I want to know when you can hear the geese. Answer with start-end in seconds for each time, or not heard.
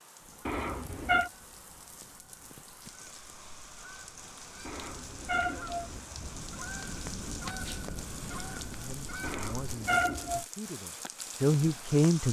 0.1-9.8.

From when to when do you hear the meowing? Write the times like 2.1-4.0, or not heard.
0.5-1.3, 4.7-6.3, 9.2-10.4.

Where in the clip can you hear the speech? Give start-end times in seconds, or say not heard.
8.7-12.2.